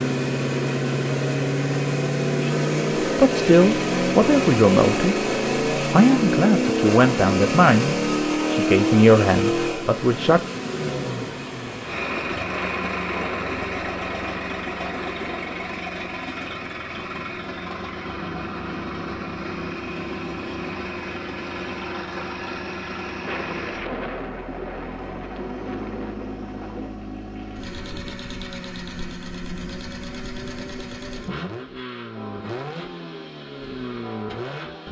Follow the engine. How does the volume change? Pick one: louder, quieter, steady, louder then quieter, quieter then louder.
quieter.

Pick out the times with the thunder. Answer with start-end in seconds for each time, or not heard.
12.5-15.8, 23.2-26.9.